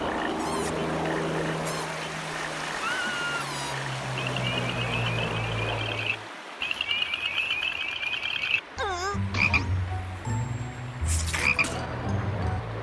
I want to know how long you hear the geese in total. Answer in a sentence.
The geese can't be heard in this clip.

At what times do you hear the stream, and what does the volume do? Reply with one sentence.
You can hear the stream from 0.0 to 12.7 s, getting quieter.